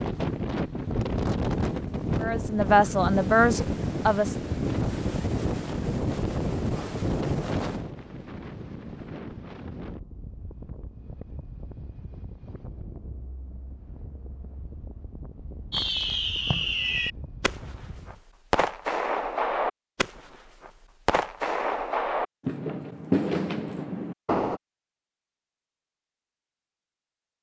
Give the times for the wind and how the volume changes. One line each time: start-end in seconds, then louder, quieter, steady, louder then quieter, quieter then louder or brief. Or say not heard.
0.0-18.2 quieter.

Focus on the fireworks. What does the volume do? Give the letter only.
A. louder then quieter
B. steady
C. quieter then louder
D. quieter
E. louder
B.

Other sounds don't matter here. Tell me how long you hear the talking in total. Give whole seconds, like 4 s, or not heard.
2 s.